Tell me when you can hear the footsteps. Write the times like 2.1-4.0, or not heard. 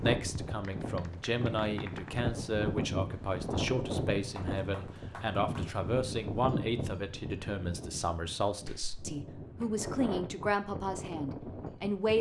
not heard.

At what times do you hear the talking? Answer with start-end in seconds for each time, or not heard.
0.0-12.1.